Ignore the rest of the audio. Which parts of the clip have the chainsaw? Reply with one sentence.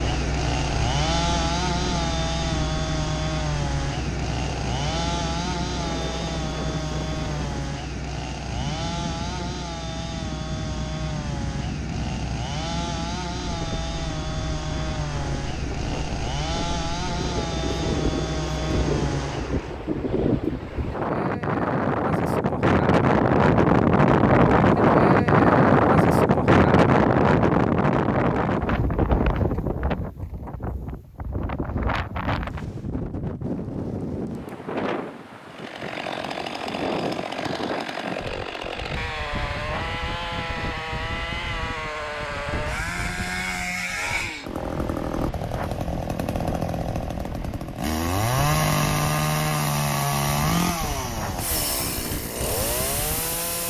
You can hear the chainsaw from 0.0 to 19.8 s and from 35.5 to 53.6 s.